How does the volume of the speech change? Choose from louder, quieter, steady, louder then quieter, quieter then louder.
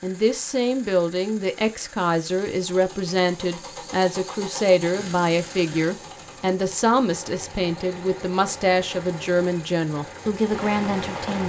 steady.